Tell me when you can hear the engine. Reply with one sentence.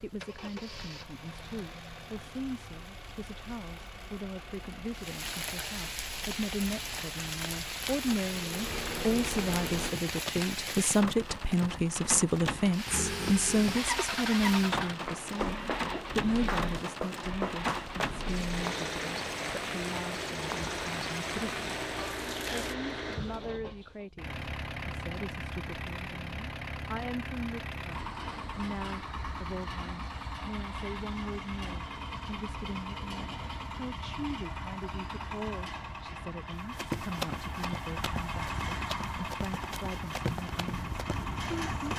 You can hear the engine from 0.0 to 9.9 s and from 12.8 to 41.9 s.